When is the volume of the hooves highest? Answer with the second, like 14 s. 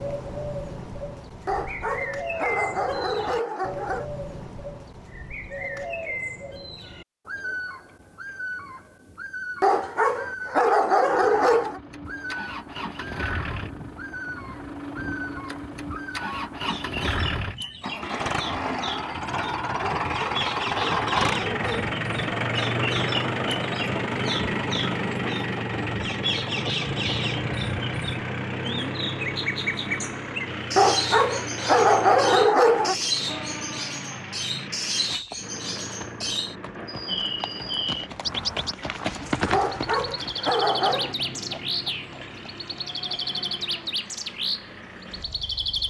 39 s.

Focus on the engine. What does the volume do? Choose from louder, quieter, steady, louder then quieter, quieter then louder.
louder then quieter.